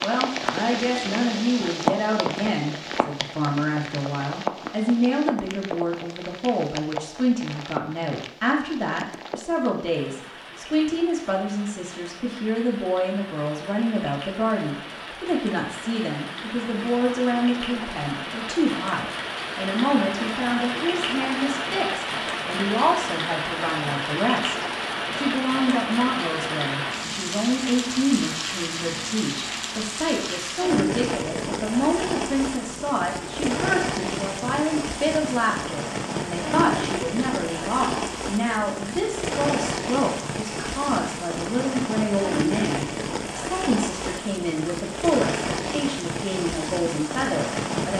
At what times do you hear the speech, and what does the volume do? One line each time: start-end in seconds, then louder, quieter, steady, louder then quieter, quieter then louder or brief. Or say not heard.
0.0-47.9 steady.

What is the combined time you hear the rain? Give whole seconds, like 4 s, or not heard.
48 s.